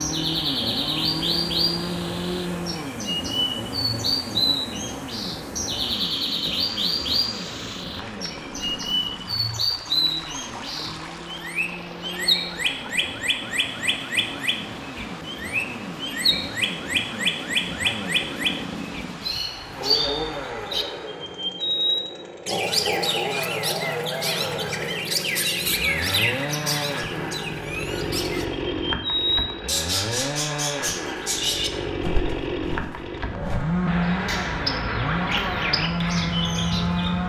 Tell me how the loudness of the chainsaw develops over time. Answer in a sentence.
The volume of the chainsaw goes down, then up.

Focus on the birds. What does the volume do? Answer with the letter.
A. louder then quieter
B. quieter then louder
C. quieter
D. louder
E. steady
E.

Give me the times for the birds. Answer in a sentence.
You can hear the birds from 0.0 to 37.2 s.